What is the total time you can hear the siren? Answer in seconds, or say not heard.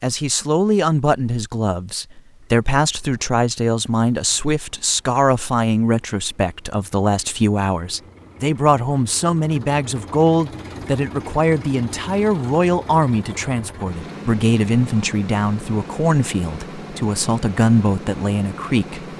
not heard.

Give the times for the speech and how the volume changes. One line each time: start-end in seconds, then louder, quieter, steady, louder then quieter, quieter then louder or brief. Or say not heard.
0.0-19.1 steady.